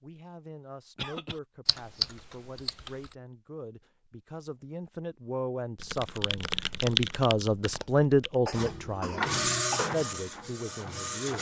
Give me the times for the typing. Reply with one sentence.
The typing can be heard from 1.6 to 3.1 s and from 5.8 to 8.3 s.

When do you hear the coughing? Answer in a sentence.
The coughing can be heard from 0.9 to 1.4 s and from 8.4 to 9.9 s.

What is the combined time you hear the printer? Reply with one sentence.
You can hear the printer for 3 seconds altogether.